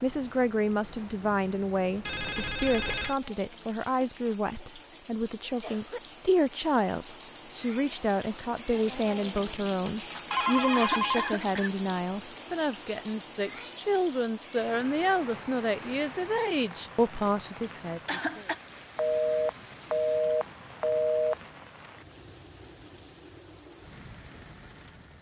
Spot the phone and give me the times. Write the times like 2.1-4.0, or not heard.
2.0-3.1, 10.3-11.3, 18.9-21.5.